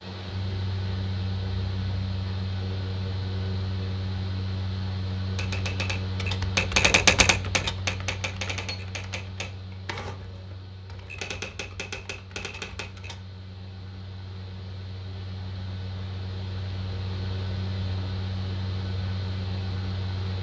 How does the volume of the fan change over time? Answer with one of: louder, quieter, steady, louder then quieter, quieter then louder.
quieter then louder.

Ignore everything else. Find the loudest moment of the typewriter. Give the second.
7 s.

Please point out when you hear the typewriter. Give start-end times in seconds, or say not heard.
5.3-13.2.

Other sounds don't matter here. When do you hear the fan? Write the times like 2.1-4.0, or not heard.
0.0-20.3.